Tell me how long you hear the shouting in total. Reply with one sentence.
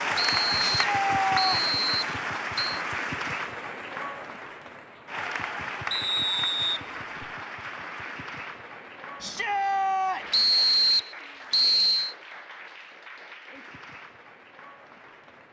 You can hear the shouting for 2 seconds altogether.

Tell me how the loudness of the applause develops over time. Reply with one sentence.
The loudness of the applause goes down.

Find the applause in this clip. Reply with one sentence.
The applause can be heard from 0.0 to 15.4 s.